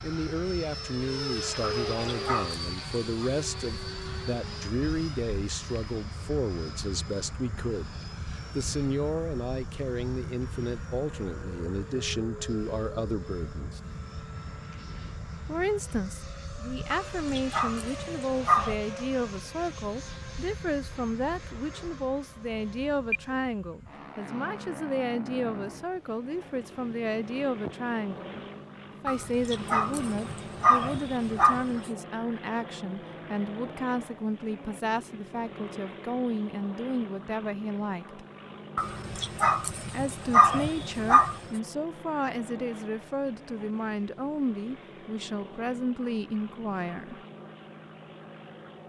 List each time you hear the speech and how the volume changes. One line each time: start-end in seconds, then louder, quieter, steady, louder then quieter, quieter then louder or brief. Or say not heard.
0.0-13.8 steady
15.4-38.2 steady
39.9-47.2 steady.